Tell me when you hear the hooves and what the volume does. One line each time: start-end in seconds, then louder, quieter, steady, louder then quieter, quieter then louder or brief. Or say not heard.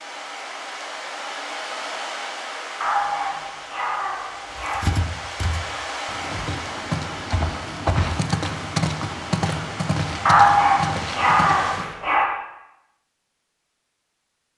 4.5-11.8 louder then quieter.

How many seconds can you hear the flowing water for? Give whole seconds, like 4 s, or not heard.
12 s.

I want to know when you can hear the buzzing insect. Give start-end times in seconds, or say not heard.
not heard.